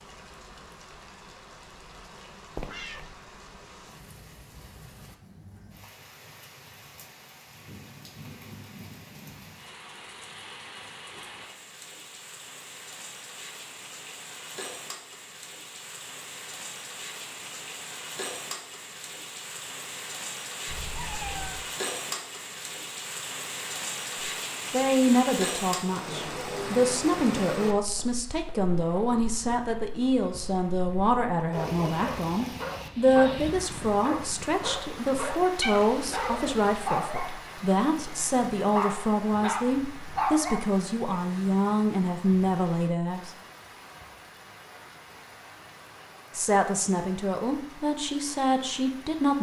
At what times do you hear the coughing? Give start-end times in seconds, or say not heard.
not heard.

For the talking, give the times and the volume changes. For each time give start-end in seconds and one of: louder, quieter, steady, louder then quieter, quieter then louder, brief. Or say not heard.
24.7-43.3 steady
46.4-49.3 brief.